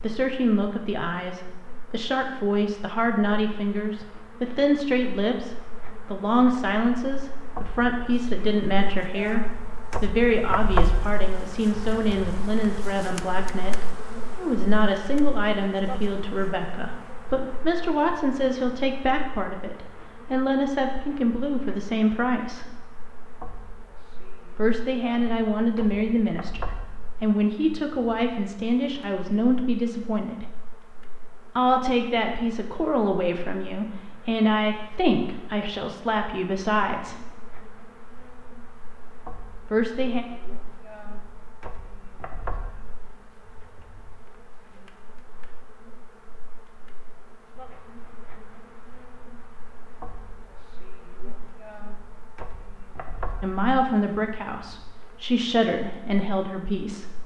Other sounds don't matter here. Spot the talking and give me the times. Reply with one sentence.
The talking can be heard from 0.0 to 22.7 s, from 24.6 to 30.4 s, from 31.6 to 37.2 s, from 39.7 to 40.2 s and from 53.4 to 57.0 s.